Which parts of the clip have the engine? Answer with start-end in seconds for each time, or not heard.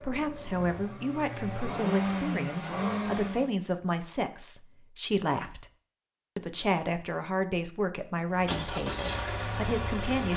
0.0-3.5, 8.2-10.3.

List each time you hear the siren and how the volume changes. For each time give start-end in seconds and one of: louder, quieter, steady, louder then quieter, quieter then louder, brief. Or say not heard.
not heard.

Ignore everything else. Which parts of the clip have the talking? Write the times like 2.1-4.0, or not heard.
0.0-5.7, 6.3-10.3.